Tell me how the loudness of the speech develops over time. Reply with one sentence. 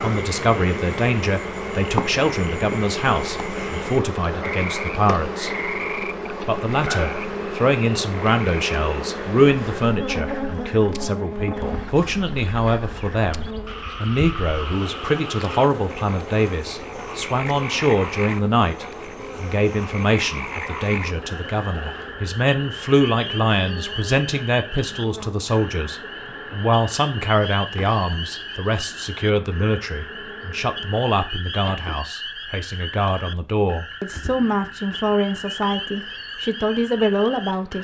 The loudness of the speech stays about the same.